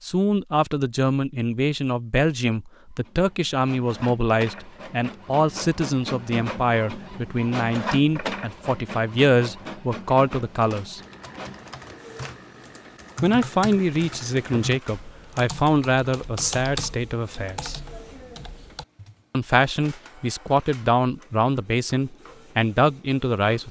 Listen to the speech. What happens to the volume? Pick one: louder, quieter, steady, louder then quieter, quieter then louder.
steady.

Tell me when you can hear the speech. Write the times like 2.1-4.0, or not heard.
0.0-11.0, 13.2-17.8, 19.3-23.6.